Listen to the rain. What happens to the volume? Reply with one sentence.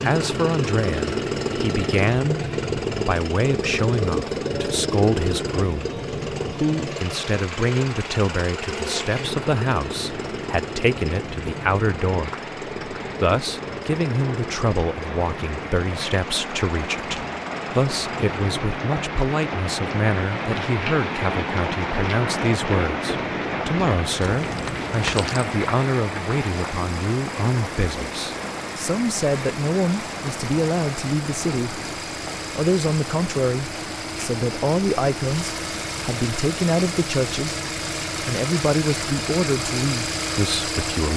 The volume of the rain goes up, then down.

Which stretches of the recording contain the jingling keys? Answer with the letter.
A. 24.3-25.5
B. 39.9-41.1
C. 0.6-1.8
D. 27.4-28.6
A.